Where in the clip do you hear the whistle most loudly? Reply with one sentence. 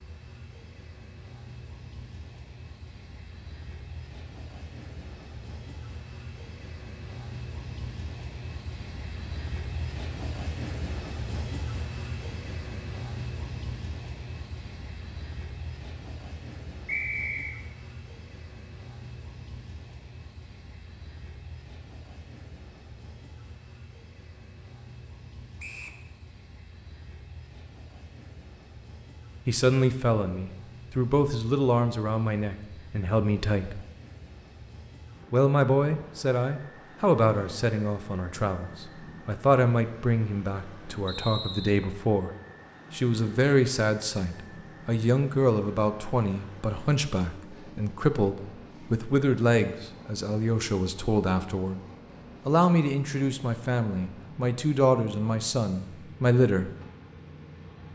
The volume of the whistle peaks at 17 seconds.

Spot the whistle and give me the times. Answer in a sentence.
The whistle can be heard from 16.9 to 17.6 s, from 25.6 to 26.0 s and from 41.0 to 41.7 s.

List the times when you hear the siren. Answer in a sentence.
You can't hear the siren here.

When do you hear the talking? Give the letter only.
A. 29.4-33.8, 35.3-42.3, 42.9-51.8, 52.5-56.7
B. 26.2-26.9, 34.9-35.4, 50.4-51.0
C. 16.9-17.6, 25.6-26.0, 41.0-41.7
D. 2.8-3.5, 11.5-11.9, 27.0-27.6
A.